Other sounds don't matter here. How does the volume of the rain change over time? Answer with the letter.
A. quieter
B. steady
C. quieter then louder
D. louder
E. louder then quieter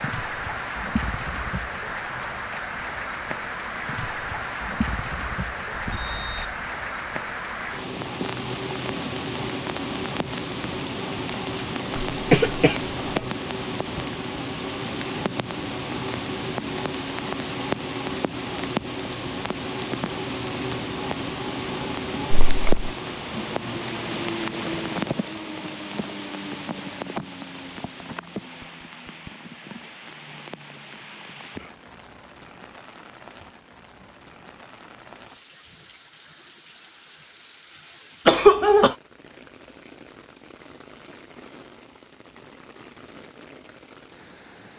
A.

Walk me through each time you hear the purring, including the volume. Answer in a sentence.
You can't hear the purring here.